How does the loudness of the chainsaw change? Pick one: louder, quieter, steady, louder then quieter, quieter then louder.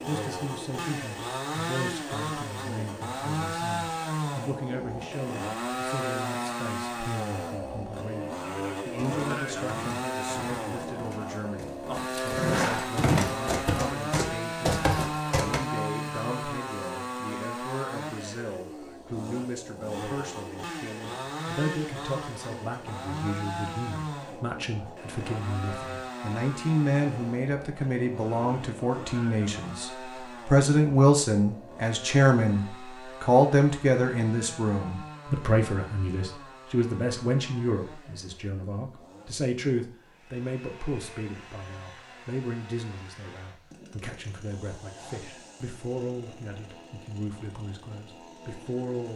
quieter.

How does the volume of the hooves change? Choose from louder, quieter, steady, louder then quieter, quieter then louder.
louder.